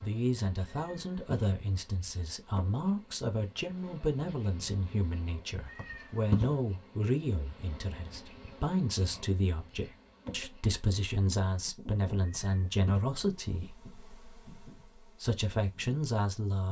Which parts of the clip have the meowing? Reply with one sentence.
You can hear the meowing from 0.7 to 1.4 s, from 5.7 to 6.5 s and from 12.2 to 13.0 s.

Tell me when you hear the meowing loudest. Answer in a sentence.
The volume of the meowing peaks at 6 seconds.